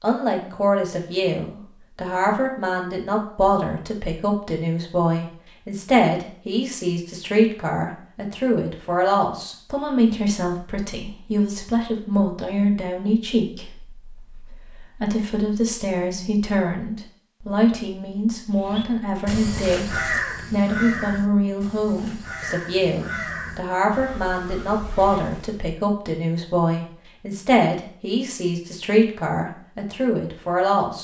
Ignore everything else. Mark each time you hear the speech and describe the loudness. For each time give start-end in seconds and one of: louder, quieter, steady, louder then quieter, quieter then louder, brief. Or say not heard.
0.0-30.9 steady.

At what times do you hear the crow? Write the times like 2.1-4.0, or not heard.
18.7-25.6.